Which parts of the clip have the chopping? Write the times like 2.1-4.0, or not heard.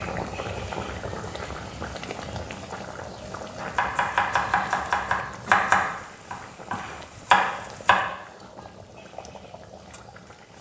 3.6-8.0.